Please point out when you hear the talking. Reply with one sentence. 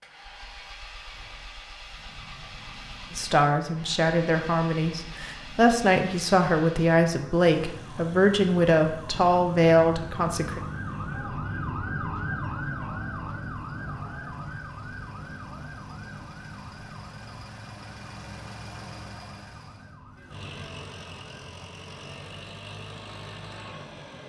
The talking can be heard from 3.1 to 10.6 s.